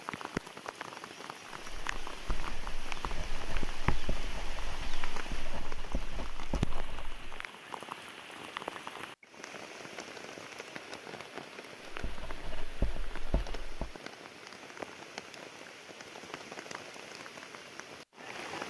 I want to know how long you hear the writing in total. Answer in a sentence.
You can hear the writing for 8 seconds altogether.